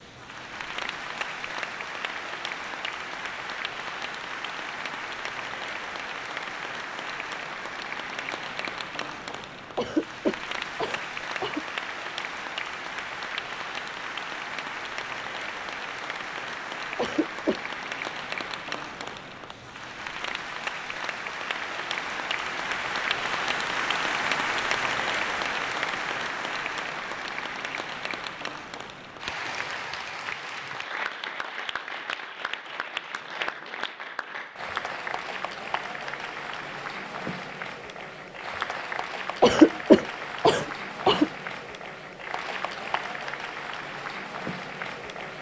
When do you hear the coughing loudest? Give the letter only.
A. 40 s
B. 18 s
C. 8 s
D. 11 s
A.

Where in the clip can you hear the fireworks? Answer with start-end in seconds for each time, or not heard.
not heard.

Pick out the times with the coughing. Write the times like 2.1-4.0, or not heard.
9.8-11.7, 16.9-17.6, 39.4-41.3.